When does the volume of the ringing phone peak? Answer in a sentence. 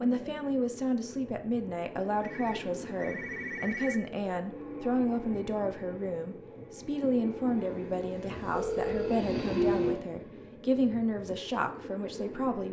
The volume of the ringing phone peaks at 9 seconds.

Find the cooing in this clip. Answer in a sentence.
You can't hear the cooing here.